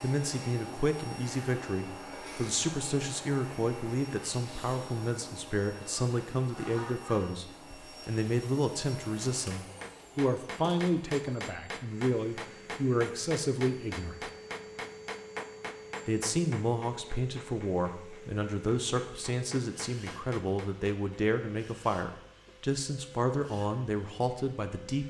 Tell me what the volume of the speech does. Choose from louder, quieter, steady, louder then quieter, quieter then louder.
steady.